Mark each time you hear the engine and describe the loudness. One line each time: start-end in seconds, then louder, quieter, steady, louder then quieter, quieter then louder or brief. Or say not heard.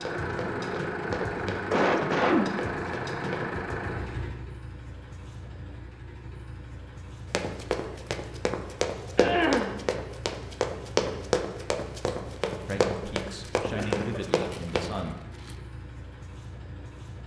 0.0-17.2 quieter.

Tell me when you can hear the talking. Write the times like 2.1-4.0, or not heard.
12.7-15.2.